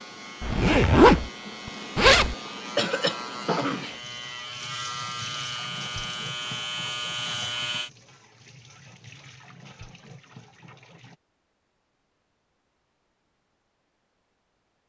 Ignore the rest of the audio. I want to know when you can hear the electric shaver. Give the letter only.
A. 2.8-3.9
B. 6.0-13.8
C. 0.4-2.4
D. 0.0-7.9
D.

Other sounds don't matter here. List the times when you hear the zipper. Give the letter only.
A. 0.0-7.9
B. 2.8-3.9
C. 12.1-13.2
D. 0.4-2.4
D.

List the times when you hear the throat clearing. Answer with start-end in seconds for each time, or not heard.
2.8-3.9.